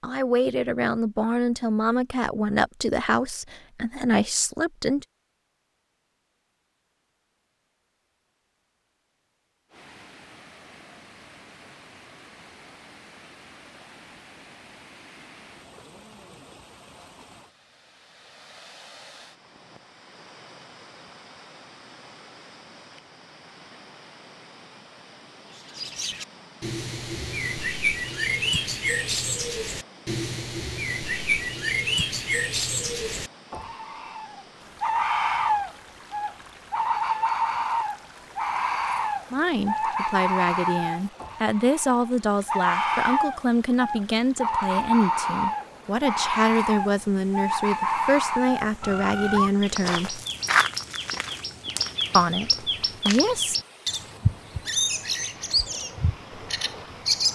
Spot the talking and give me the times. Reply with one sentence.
You can hear the talking from 0.0 to 5.0 s, from 39.3 to 50.2 s and from 52.1 to 53.5 s.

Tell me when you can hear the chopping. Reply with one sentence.
The chopping can't be heard in this clip.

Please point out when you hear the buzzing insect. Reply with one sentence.
You can't hear the buzzing insect here.